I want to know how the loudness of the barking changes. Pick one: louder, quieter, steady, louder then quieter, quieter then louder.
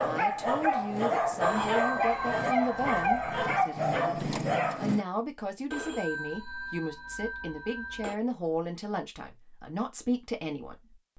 steady.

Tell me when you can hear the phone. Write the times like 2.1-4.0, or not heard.
1.4-3.4, 5.7-8.2.